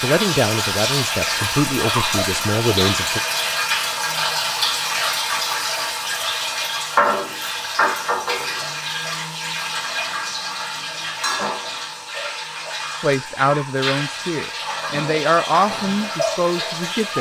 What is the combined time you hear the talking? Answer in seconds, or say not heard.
7 s.